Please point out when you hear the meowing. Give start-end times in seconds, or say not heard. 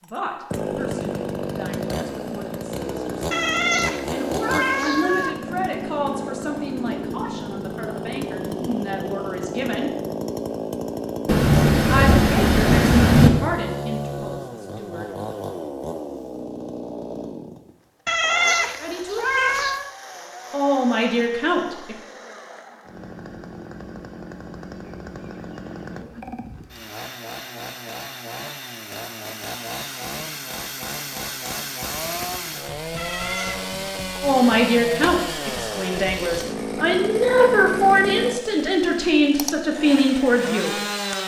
3.3-5.3, 18.1-19.9, 33.0-33.6.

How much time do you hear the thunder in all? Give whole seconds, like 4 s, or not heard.
2 s.